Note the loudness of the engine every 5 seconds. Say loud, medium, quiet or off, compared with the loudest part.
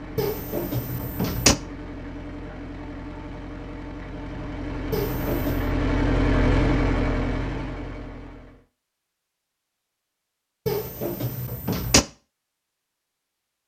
medium, loud, off.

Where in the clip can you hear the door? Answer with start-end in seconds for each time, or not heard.
0.1-1.6, 4.9-5.7, 10.7-12.1.